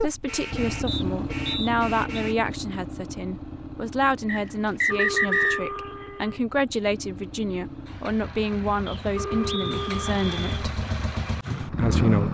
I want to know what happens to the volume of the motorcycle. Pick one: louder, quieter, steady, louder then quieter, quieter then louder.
quieter then louder.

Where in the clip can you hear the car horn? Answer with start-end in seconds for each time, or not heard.
0.2-2.4, 4.9-6.4, 9.2-10.7.